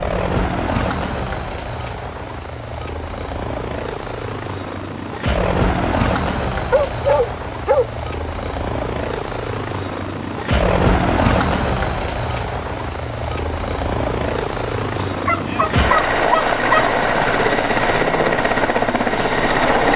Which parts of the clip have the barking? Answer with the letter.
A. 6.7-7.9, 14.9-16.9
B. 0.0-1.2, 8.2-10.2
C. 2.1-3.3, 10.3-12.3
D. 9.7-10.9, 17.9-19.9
A.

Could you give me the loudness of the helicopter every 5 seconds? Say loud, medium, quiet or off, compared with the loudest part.
medium, medium, loud, loud.